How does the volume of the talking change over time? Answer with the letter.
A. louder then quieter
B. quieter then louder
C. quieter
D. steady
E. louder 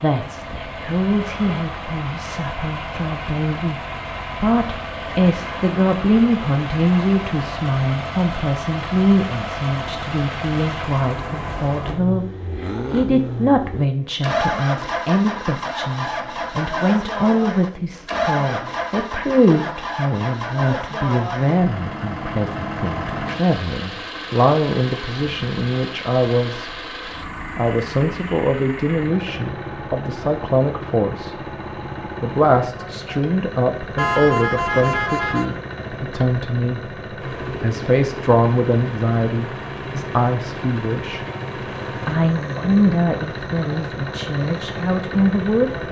D.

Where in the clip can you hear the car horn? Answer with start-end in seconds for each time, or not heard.
34.0-35.5.